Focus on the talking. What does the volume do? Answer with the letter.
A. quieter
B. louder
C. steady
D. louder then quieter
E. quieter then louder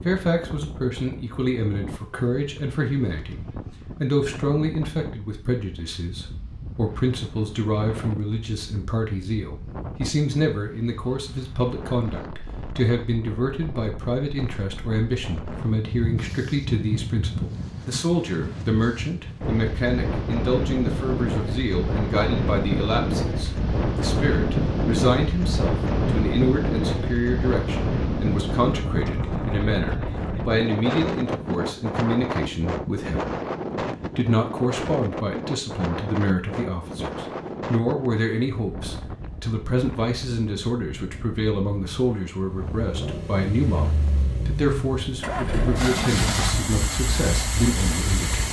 C.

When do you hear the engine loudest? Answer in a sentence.
The loudest moment of the engine is at 46 seconds.